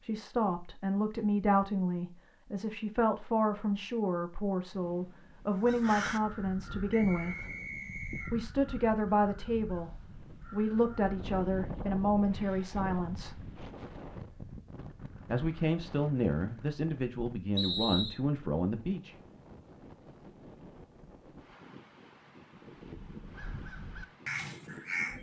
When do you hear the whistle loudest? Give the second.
18 s.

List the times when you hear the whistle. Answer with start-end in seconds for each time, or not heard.
6.9-8.3, 17.6-18.1.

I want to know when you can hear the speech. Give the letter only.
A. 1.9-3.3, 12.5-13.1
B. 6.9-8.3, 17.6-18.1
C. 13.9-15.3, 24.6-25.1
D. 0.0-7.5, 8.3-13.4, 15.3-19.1
D.